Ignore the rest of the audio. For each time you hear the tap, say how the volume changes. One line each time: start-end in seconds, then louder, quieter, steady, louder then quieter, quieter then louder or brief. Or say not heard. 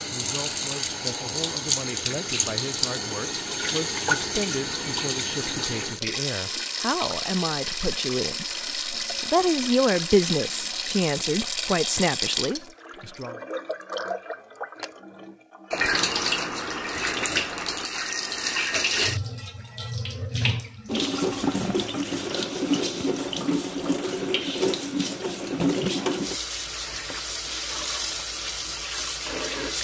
0.0-29.7 steady.